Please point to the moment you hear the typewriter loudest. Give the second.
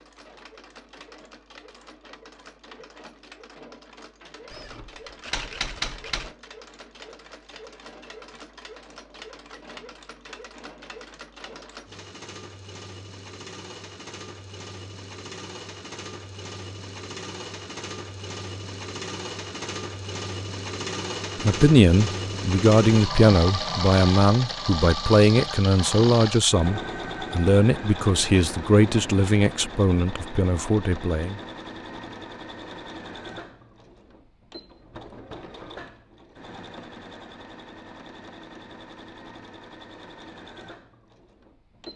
6 s.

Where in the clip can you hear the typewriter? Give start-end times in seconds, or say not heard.
4.5-6.3.